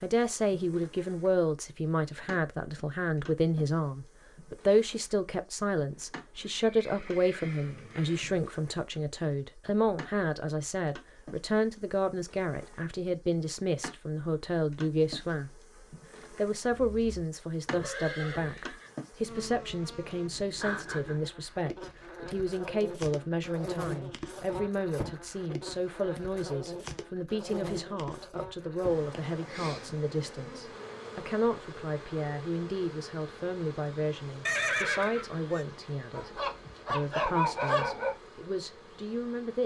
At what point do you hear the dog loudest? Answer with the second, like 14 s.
37 s.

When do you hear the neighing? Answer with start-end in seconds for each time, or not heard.
5.9-8.5, 16.7-18.9, 34.5-35.6.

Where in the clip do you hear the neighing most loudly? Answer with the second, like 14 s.
35 s.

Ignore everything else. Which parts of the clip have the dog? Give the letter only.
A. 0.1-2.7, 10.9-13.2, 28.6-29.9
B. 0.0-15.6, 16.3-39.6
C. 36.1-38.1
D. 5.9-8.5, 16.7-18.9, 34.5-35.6
C.